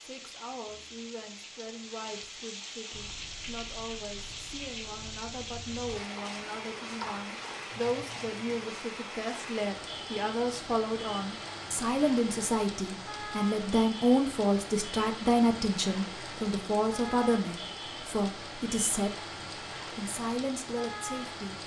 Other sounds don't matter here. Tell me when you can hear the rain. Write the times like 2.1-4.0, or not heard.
0.0-21.6.